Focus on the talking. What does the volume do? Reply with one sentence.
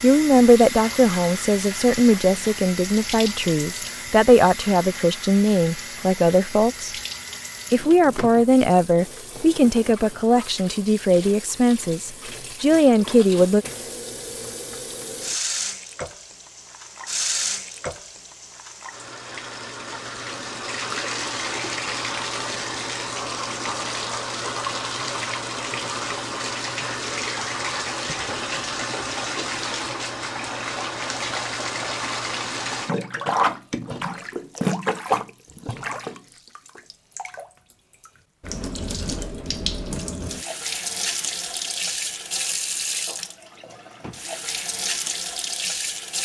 The loudness of the talking stays about the same.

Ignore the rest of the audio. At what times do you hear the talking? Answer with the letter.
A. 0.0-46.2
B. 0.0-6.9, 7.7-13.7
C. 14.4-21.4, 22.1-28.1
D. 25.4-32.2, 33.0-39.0
B.